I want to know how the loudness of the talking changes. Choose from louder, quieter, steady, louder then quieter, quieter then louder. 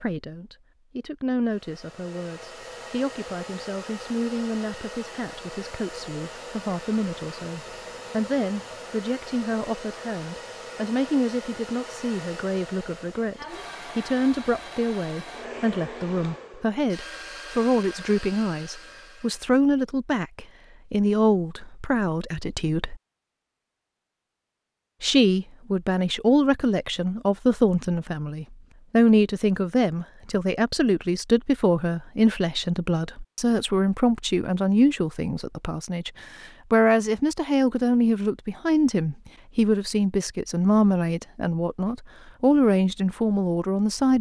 louder.